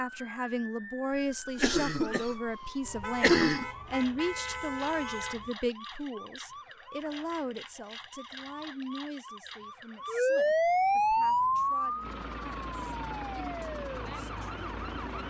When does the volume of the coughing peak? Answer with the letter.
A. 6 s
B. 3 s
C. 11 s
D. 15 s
B.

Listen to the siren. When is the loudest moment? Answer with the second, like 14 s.
11 s.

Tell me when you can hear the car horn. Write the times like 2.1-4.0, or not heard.
2.8-5.5.